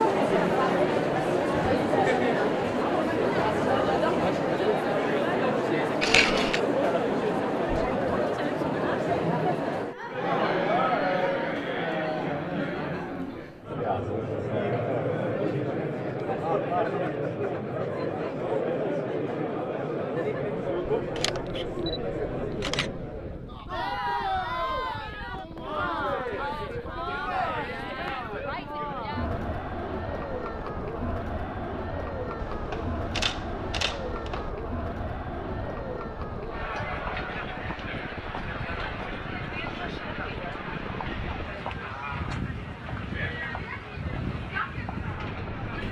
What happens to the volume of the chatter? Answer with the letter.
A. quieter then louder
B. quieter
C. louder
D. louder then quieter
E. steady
B.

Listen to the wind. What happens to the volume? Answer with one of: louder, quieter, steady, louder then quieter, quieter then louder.
louder.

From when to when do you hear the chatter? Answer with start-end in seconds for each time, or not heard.
0.0-45.8.